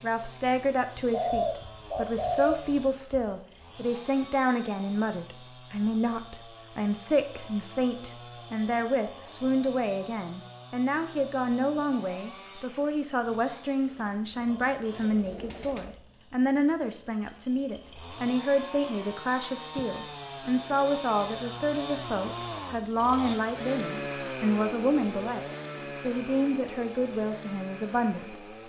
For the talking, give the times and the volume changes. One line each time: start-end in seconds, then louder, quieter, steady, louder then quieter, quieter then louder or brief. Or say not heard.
0.0-28.4 steady.